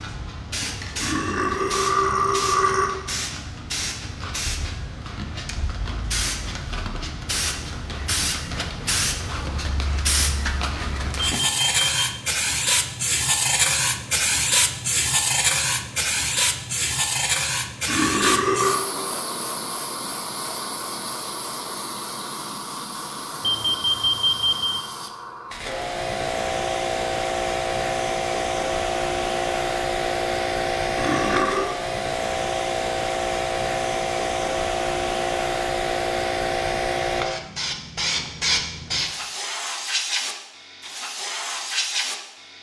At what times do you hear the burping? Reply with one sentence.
You can hear the burping from 1.0 to 2.9 s, from 17.9 to 18.8 s and from 30.9 to 31.8 s.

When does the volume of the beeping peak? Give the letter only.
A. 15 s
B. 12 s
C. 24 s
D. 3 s
C.